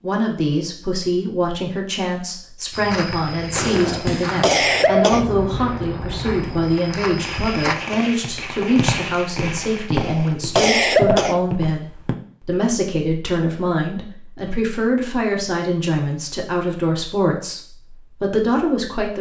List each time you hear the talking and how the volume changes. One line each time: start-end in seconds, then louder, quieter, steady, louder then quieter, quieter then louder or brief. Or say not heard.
0.0-19.1 steady.